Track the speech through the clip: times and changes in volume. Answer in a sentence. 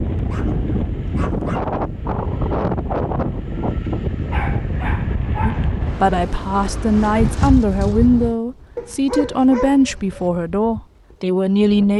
You can hear the speech from 5.5 to 11.9 s, at a steady volume.